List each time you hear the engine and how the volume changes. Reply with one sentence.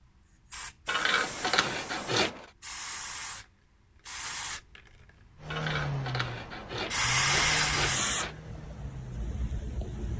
You can hear the engine from 5.4 to 10.1 s, getting quieter.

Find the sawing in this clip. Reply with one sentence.
You can hear the sawing from 0.8 to 2.5 s and from 5.5 to 8.3 s.